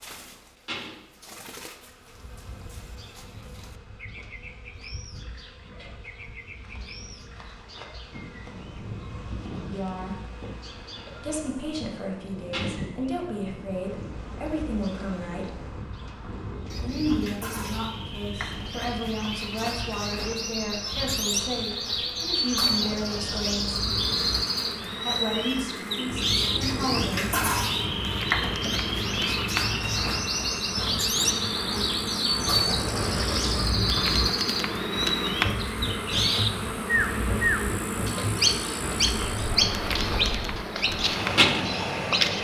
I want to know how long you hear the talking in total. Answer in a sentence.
You can hear the talking for 14 seconds altogether.